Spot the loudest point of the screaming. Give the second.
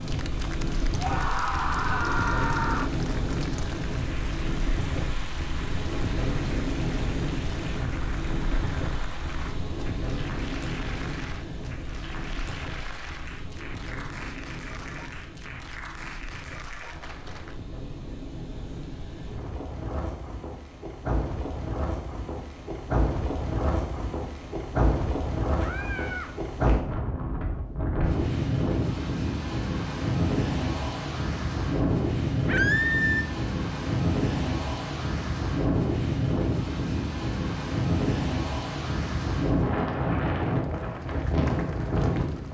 33 s.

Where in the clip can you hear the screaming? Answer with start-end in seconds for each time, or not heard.
1.0-2.9, 25.6-26.3, 32.5-33.2.